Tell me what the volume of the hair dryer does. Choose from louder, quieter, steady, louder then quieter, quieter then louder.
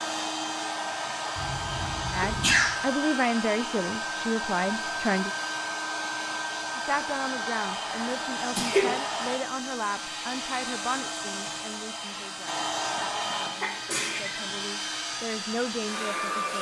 steady.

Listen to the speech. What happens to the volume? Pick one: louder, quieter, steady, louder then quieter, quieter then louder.
quieter then louder.